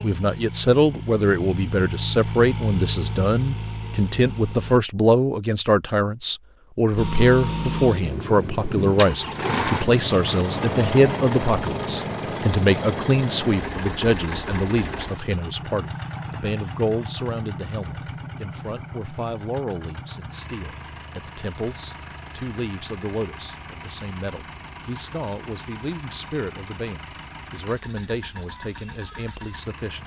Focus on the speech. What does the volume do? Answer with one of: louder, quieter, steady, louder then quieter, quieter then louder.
quieter.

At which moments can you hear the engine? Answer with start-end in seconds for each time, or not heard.
0.0-4.8, 7.0-30.0.